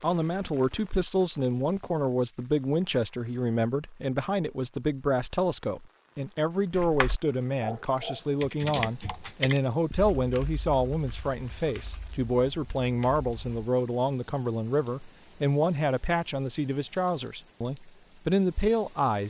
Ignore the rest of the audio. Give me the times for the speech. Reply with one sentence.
You can hear the speech from 0.0 to 19.2 s.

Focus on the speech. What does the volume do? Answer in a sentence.
The volume of the speech stays about the same.